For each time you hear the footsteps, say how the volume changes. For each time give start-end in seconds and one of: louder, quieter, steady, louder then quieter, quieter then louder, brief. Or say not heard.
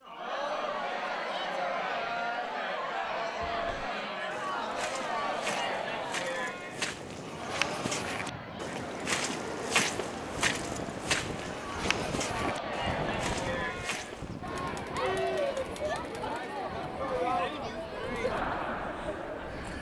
3.5-14.5 louder then quieter.